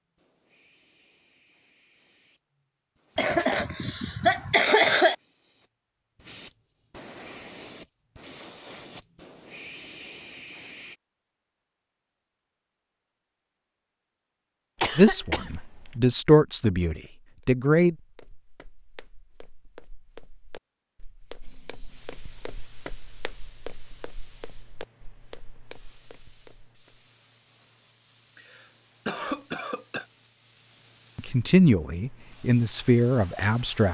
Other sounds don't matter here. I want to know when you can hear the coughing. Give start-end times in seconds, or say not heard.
3.1-5.2, 14.8-16.0, 28.4-30.1.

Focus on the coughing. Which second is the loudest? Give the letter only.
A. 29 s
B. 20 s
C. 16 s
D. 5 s
D.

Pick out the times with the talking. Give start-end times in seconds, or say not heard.
14.9-17.9, 31.1-33.9.